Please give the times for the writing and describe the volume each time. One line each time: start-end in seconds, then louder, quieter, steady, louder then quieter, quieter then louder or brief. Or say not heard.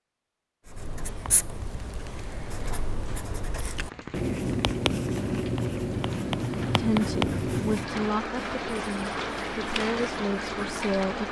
0.7-11.0 louder then quieter.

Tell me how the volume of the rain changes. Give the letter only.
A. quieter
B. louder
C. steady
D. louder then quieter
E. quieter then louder
B.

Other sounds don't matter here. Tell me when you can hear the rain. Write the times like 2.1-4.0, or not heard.
3.8-11.2.